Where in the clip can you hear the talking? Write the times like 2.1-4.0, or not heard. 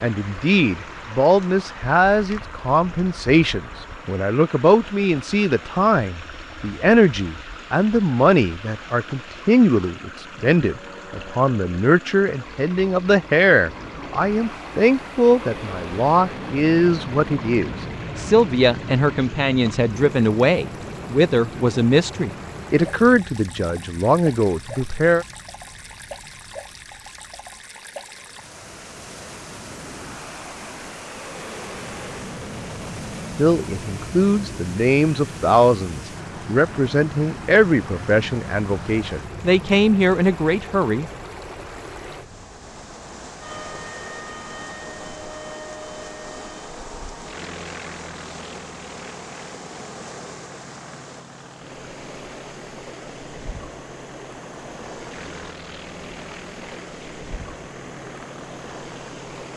0.0-25.2, 33.4-41.0.